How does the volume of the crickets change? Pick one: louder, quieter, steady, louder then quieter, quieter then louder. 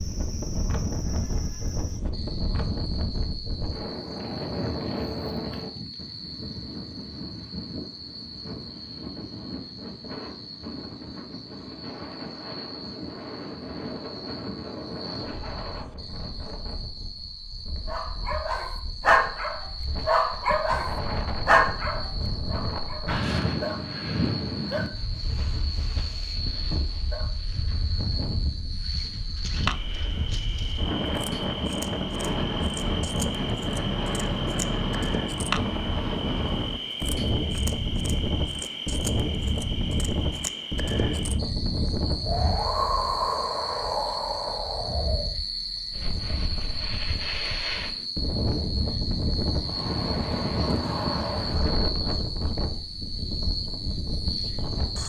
louder.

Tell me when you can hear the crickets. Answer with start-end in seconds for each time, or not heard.
0.0-55.0.